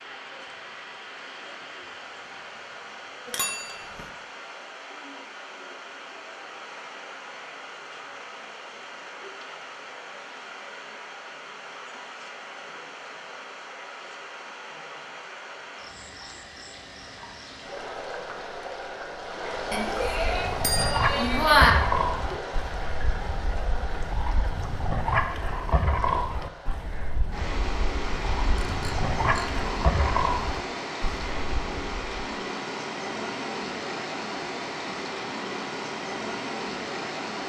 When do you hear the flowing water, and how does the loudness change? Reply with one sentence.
You can hear the flowing water from 0.0 to 37.4 s, getting louder.